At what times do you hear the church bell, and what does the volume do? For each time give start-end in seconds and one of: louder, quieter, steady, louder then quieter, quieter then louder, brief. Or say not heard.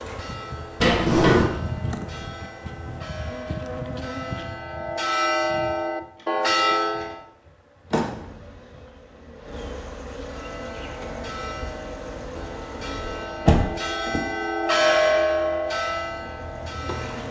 0.0-7.2 louder
10.2-17.2 louder then quieter.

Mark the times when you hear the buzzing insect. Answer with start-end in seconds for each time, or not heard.
0.0-17.2.